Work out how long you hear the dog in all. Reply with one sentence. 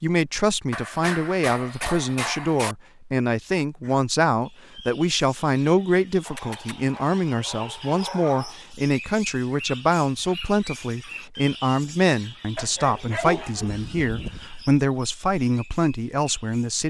You can hear the dog for 6 seconds altogether.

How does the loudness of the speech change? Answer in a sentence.
The volume of the speech stays about the same.